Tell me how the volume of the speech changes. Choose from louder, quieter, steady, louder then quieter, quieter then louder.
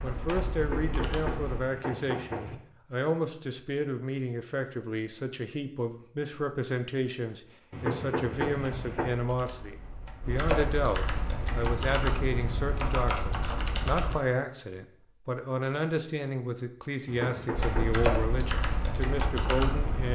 steady.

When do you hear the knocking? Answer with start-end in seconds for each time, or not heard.
0.6-2.5, 7.7-9.3, 17.1-18.0.